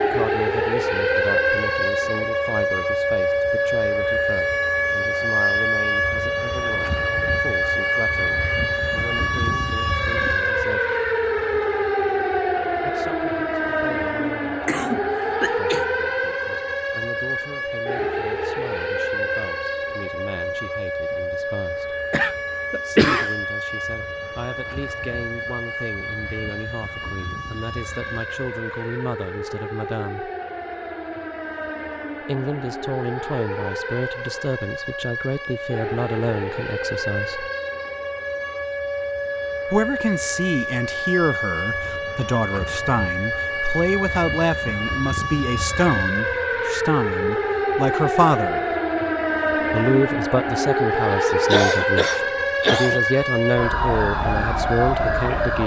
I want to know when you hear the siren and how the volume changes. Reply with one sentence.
You can hear the siren from 0.0 to 55.6 s, getting quieter then louder.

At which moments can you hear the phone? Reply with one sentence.
You can't hear the phone here.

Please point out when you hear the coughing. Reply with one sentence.
You can hear the coughing from 14.7 to 15.8 s, from 22.1 to 23.4 s and from 51.3 to 53.0 s.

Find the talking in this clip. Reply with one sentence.
You can hear the talking from 0.0 to 11.0 s, from 12.8 to 21.9 s, from 22.9 to 30.3 s, from 32.2 to 37.5 s, from 39.6 to 48.6 s and from 49.7 to 55.6 s.